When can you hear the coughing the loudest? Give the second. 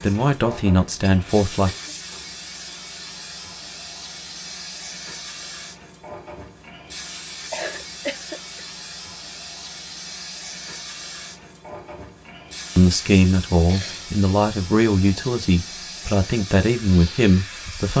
8 s.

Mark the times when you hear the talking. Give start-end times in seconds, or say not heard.
0.0-1.7, 12.8-17.9.